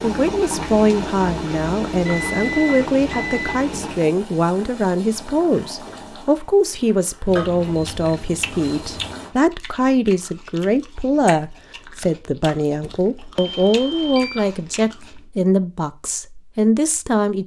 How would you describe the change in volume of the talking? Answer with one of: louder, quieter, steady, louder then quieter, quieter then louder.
steady.